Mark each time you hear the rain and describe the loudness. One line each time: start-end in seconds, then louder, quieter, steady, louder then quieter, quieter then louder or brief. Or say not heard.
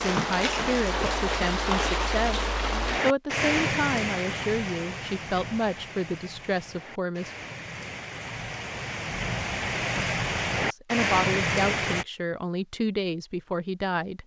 0.0-12.1 quieter then louder.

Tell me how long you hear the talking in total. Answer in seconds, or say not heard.
11 s.